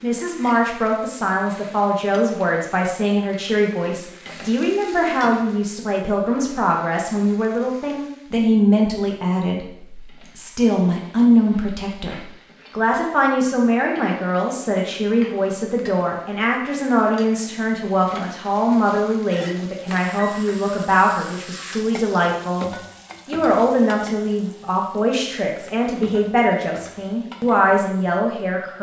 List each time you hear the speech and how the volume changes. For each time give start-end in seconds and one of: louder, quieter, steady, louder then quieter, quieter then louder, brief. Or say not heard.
0.0-28.7 steady.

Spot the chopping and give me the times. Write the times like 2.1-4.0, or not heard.
not heard.